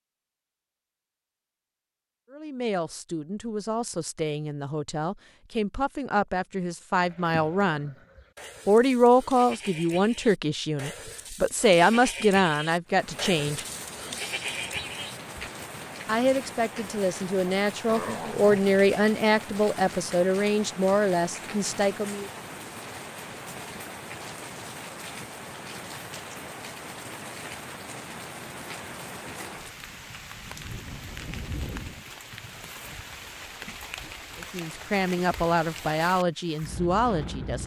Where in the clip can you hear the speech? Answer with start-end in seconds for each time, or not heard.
2.3-8.0, 8.7-13.7, 16.1-22.3, 34.4-37.6.